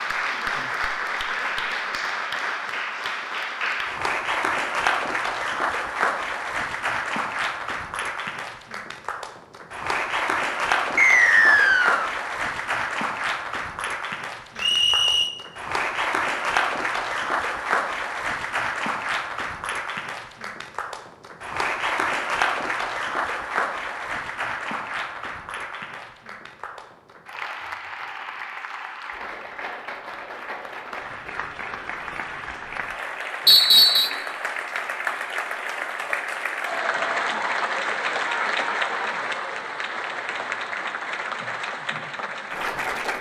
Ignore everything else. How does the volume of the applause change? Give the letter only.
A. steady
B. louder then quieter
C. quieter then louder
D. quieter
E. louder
C.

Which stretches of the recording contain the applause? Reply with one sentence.
The applause can be heard from 0.0 to 43.1 s.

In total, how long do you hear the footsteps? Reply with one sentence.
The footsteps can't be heard in this clip.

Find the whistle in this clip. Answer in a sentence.
You can hear the whistle from 10.9 to 12.1 s, from 14.6 to 15.3 s and from 33.5 to 34.1 s.